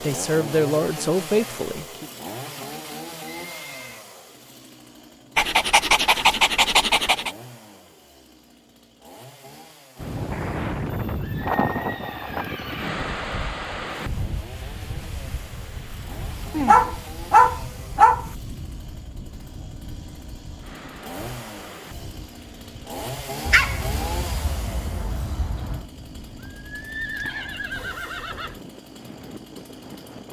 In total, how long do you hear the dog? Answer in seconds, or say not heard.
6 s.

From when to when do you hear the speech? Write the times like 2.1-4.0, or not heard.
0.0-2.1.